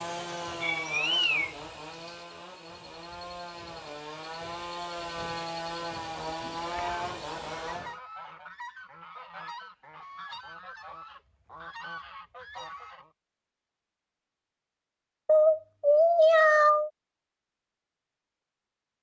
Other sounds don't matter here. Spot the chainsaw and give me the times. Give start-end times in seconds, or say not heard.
0.0-8.0.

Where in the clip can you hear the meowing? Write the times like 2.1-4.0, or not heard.
0.6-2.1, 6.4-7.7, 15.2-16.9.